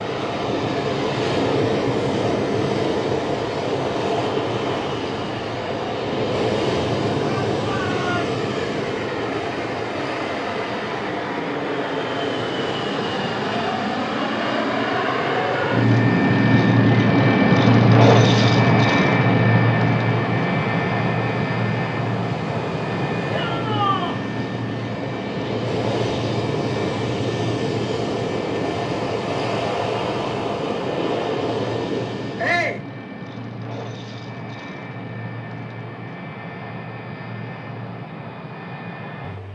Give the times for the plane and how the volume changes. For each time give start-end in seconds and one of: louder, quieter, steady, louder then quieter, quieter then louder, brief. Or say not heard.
0.0-39.5 louder then quieter.